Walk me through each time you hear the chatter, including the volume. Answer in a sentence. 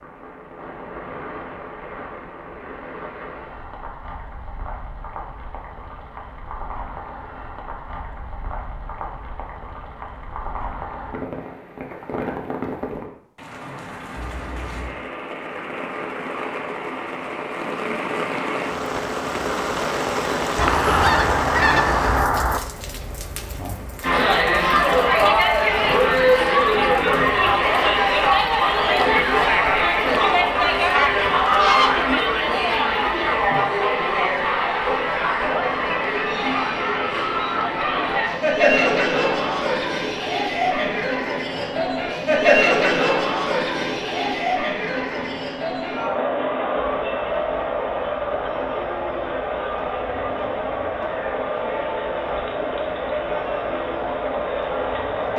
You can hear the chatter from 24.0 to 55.3 s, getting quieter.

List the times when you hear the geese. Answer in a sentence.
The geese can be heard from 20.6 to 22.6 s and from 30.1 to 32.0 s.